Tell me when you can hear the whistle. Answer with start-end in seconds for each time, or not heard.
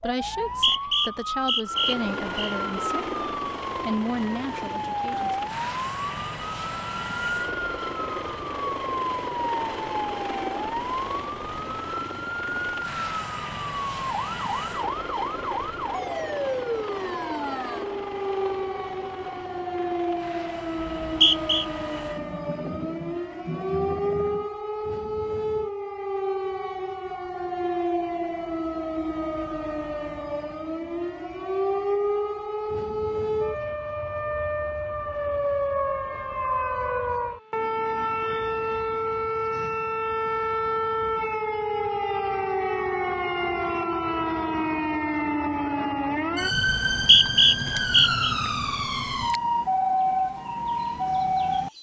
0.2-2.5, 20.9-21.6, 46.6-48.3.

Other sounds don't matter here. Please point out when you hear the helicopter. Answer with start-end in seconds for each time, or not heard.
1.6-24.5.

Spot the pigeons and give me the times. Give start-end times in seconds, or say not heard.
not heard.